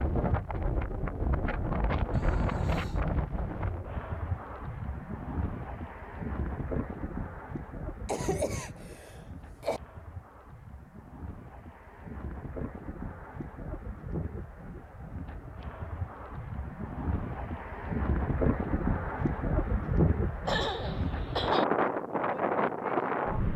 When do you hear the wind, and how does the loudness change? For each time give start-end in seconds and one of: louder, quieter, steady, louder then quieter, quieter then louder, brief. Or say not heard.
0.0-23.5 quieter then louder.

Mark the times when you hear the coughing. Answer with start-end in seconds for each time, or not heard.
2.1-3.0, 8.1-9.8, 20.4-21.6.